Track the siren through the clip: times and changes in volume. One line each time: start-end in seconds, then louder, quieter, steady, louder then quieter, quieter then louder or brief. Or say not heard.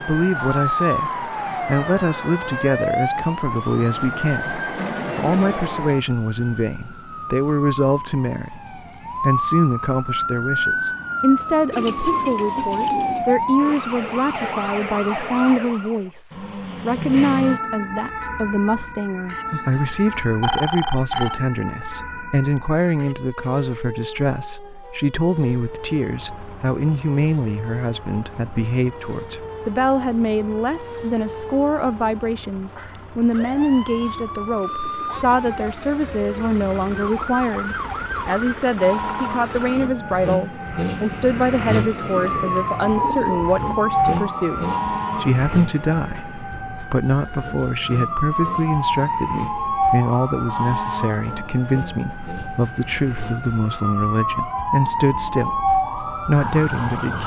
0.0-57.2 quieter then louder.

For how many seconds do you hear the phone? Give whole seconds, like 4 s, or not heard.
2 s.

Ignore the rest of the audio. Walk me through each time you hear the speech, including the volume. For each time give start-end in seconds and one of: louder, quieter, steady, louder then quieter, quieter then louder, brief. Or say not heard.
0.0-57.2 steady.